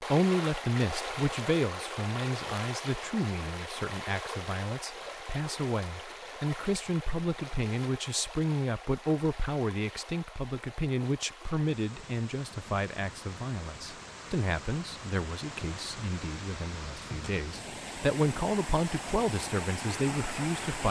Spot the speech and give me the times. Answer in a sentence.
The speech can be heard from 0.0 to 20.8 s.